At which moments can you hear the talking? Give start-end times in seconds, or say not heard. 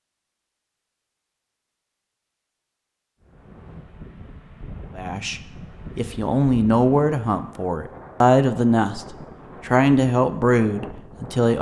5.0-11.5.